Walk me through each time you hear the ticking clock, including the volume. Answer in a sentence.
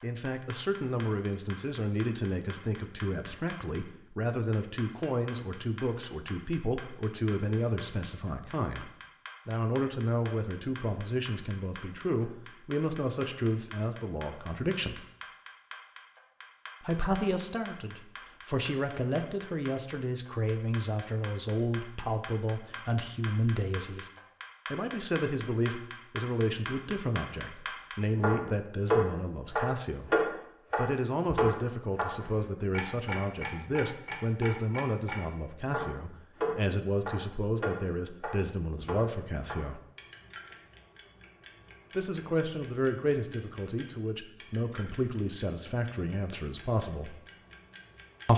The ticking clock can be heard from 0.0 to 48.3 s, getting louder then quieter.